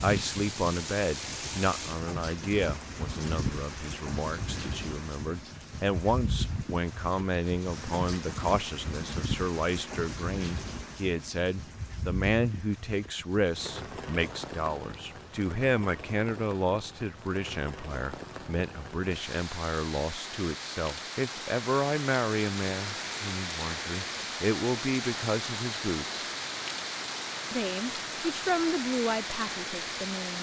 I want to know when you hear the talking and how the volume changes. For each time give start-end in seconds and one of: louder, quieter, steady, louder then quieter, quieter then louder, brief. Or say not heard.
0.0-26.2 steady
27.5-30.3 brief.